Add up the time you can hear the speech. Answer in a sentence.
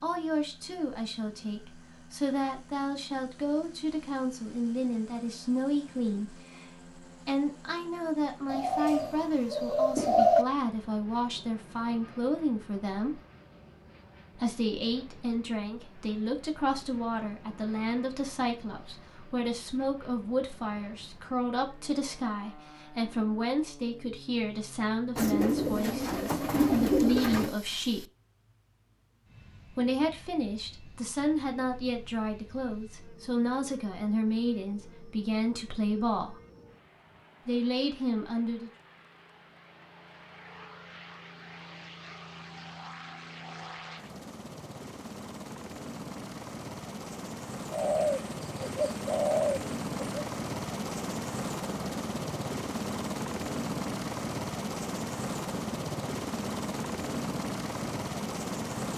You can hear the speech for 35 seconds altogether.